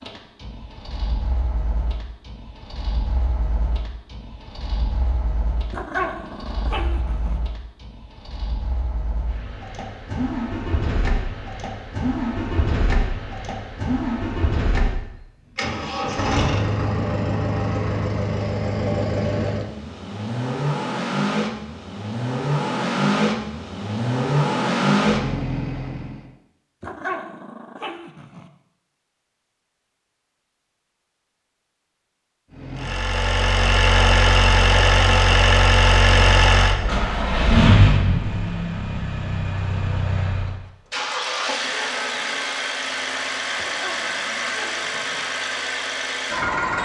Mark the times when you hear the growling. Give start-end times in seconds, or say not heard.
5.7-7.4, 26.8-28.5, 43.5-45.2.